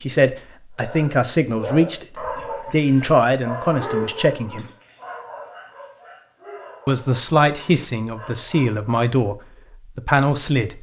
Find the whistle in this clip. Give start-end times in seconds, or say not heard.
not heard.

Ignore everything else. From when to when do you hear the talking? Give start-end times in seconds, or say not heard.
0.0-4.7, 6.8-9.3, 9.9-10.7.